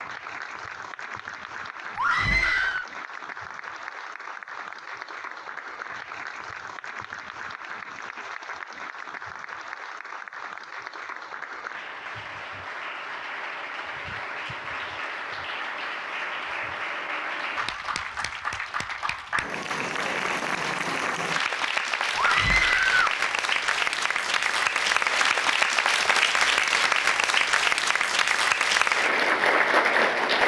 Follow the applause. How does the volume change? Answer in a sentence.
The volume of the applause goes up.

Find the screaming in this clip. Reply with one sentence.
You can hear the screaming from 1.9 to 2.9 s and from 22.1 to 23.1 s.